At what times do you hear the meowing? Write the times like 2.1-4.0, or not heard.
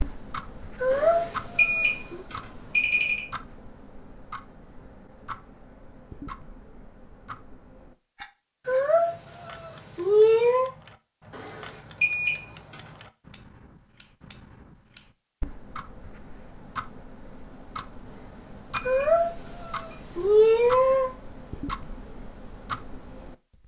0.8-2.2, 8.7-10.7, 18.9-21.1.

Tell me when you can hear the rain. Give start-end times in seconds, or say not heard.
not heard.